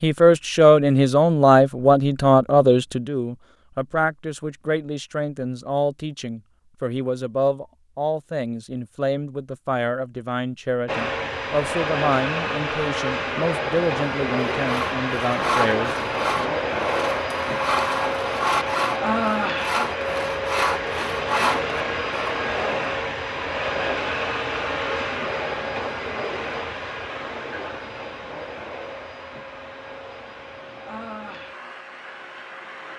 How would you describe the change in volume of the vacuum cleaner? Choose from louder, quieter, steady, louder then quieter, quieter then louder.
quieter.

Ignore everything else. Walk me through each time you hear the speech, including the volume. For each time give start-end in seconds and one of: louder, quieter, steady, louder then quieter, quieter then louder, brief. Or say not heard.
0.0-16.5 quieter.